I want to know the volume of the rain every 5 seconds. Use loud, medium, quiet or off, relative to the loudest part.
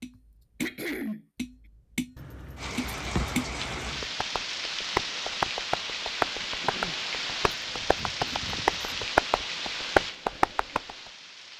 loud, loud, medium.